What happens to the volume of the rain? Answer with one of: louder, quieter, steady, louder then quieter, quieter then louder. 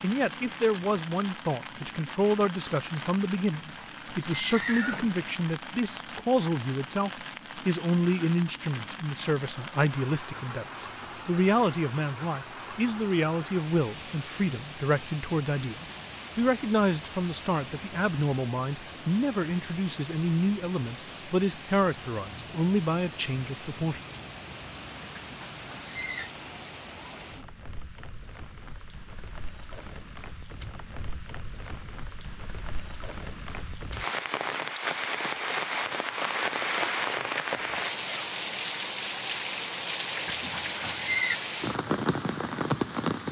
louder.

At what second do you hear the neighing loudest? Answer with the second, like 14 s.
41 s.